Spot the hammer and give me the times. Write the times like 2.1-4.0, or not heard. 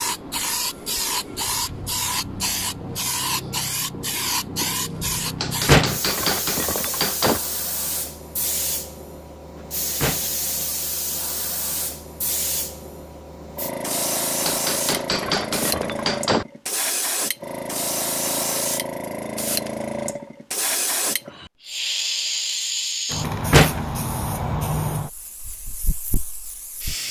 5.4-7.4, 14.4-16.4.